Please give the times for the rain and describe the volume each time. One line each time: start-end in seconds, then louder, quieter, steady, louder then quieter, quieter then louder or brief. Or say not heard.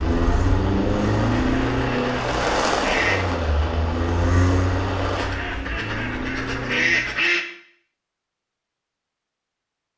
0.0-5.3 louder then quieter.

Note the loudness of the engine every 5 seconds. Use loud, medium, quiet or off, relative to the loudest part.
loud, medium.